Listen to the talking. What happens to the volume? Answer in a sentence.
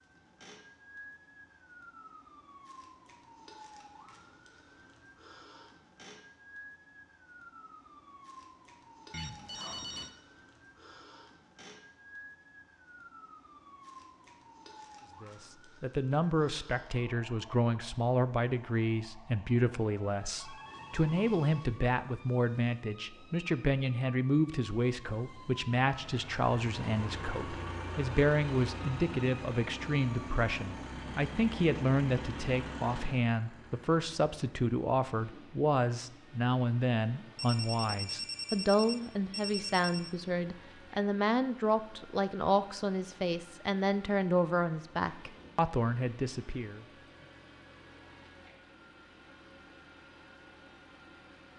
The volume of the talking stays about the same.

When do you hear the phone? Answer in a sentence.
You can hear the phone from 9.1 to 10.2 s, from 20.4 to 21.7 s and from 37.4 to 40.1 s.